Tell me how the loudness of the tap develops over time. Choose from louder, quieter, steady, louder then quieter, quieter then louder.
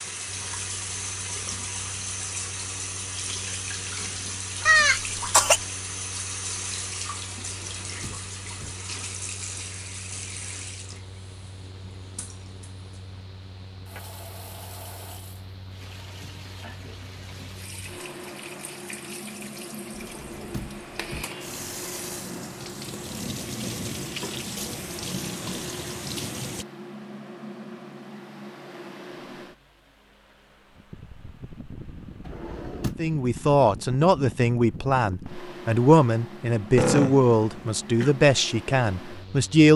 quieter then louder.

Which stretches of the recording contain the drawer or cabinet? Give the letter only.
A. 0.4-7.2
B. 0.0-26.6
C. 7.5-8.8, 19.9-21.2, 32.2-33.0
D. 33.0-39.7
C.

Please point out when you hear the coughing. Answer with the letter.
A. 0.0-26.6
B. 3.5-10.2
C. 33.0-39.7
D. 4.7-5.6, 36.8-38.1
D.